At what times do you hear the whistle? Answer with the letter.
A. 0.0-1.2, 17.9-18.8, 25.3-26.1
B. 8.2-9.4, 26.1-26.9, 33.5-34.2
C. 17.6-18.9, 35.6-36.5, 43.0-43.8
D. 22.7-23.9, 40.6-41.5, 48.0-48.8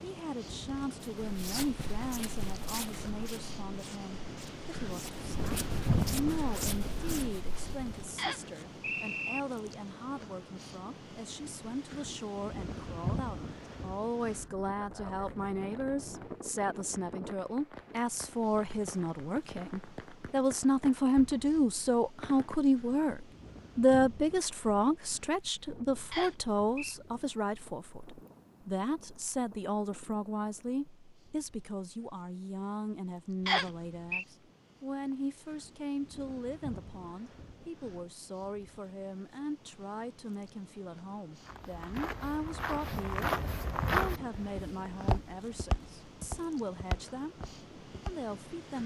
B.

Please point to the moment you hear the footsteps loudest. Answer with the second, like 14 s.
44 s.